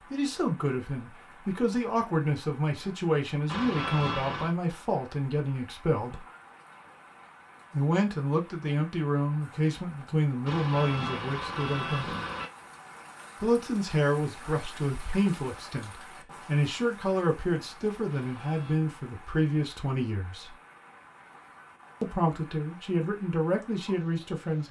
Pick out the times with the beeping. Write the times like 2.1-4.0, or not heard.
3.5-4.5, 10.4-12.4, 18.1-18.8.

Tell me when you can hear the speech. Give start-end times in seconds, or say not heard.
0.1-6.2, 7.7-12.1, 13.4-20.6, 22.0-24.6.